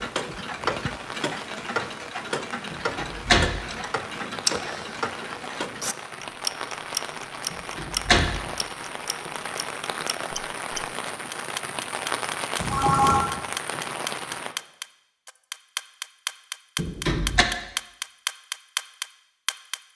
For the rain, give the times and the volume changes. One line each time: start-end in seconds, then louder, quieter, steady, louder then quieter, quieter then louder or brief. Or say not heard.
0.0-14.6 louder.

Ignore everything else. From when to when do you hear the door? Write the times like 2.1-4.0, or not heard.
2.7-3.6, 7.5-8.4, 16.8-17.4.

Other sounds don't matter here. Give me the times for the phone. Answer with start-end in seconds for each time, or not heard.
12.6-13.2.